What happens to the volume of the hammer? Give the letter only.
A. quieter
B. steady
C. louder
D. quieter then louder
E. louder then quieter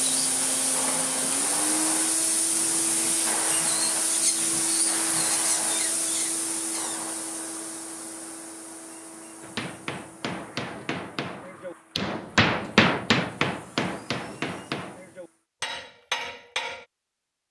E.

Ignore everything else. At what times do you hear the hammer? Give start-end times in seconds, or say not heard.
9.4-16.9.